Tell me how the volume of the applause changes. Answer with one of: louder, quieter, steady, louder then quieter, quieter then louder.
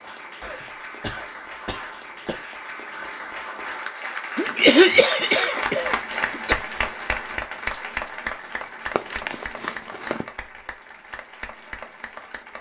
louder then quieter.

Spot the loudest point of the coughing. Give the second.
5 s.